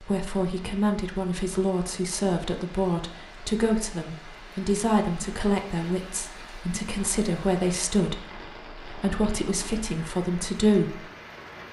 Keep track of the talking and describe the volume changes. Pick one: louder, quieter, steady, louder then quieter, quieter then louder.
steady.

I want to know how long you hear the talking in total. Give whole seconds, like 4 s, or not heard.
11 s.